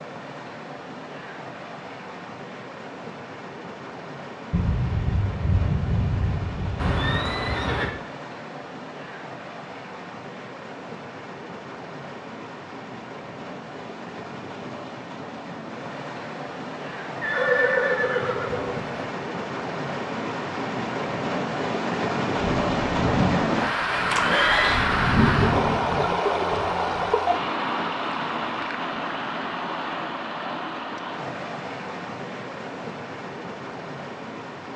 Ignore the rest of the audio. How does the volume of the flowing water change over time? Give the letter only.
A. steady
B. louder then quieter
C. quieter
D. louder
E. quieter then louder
B.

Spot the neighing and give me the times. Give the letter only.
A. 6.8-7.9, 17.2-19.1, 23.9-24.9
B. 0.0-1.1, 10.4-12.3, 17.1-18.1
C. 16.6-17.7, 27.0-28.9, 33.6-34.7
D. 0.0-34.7
A.